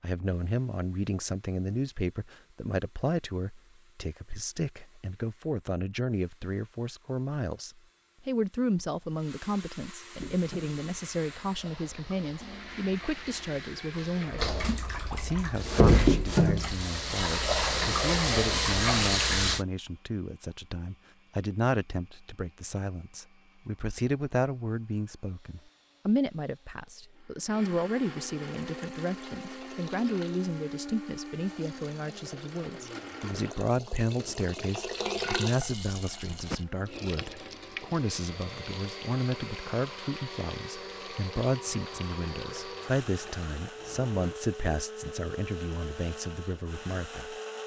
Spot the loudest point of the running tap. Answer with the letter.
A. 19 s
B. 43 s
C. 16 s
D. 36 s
C.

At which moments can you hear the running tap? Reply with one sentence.
You can hear the running tap from 10.2 to 19.6 s and from 28.4 to 44.4 s.